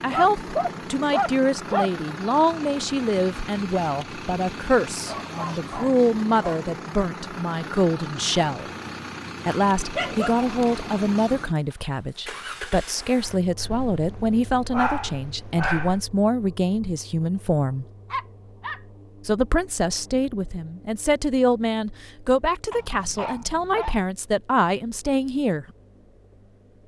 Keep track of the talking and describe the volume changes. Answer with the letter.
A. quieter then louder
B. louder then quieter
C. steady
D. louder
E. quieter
C.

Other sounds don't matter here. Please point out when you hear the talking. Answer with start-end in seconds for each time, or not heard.
0.0-8.7, 9.4-17.9, 19.2-25.6.